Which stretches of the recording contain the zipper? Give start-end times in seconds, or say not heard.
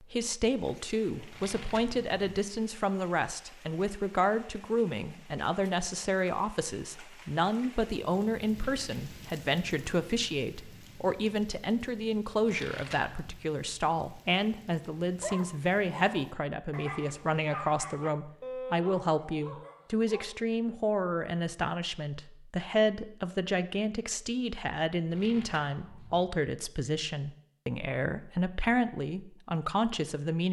not heard.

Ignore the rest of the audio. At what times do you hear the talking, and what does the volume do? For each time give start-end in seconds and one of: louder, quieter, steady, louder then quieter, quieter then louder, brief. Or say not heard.
0.0-30.4 steady.